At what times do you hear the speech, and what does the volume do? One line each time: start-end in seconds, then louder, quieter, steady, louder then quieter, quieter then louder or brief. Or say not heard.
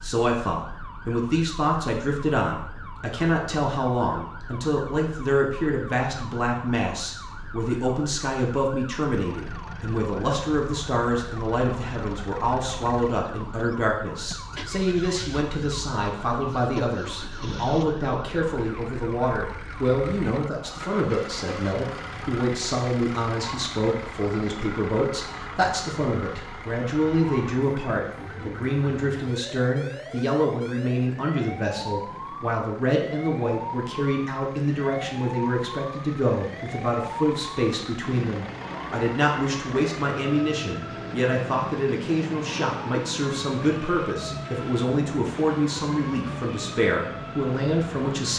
0.0-48.3 steady.